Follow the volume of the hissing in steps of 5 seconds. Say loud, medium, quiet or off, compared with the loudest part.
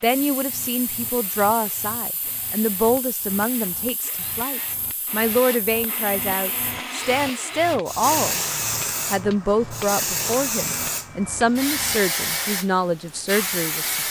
quiet, loud, loud.